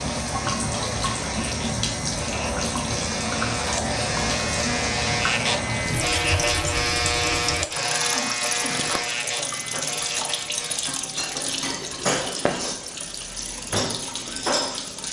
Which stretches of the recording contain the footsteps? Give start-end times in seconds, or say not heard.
not heard.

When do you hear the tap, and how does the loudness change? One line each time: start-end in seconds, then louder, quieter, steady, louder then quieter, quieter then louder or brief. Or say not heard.
0.0-15.0 steady.